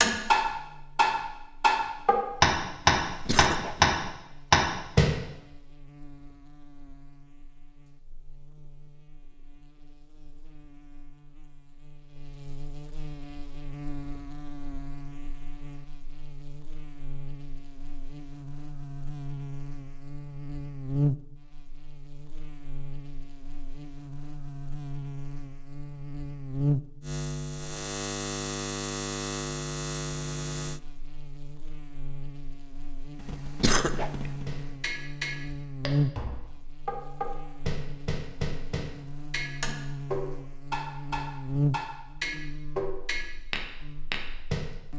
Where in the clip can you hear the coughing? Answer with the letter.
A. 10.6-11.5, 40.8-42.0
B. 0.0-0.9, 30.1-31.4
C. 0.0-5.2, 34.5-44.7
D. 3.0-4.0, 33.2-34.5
D.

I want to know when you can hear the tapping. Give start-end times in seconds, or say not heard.
0.0-5.2, 34.5-44.7.